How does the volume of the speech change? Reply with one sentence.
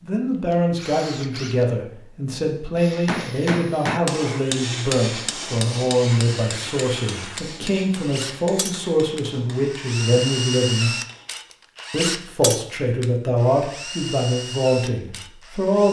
The loudness of the speech stays about the same.